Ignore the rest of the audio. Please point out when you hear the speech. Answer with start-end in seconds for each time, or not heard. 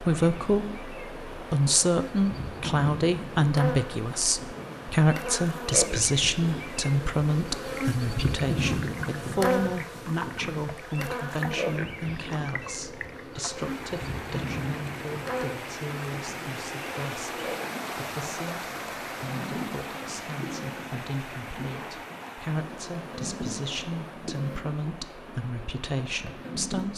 0.0-26.9.